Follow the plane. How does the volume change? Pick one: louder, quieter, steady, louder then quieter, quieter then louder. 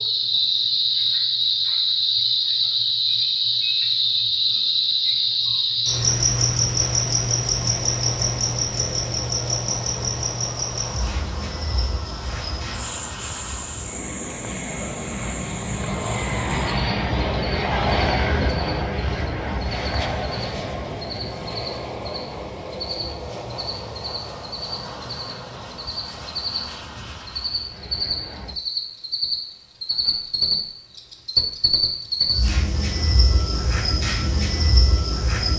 louder then quieter.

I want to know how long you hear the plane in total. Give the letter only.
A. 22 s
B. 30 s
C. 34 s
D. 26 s
A.